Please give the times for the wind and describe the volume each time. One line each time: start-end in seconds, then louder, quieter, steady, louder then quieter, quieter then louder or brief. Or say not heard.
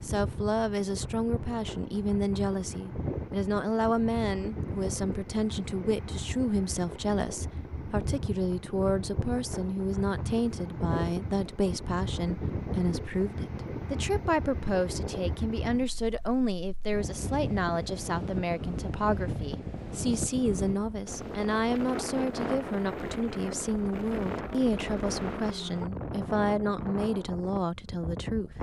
0.0-28.5 steady.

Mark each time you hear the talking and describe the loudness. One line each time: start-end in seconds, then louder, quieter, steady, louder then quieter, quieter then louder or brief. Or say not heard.
0.0-28.5 steady.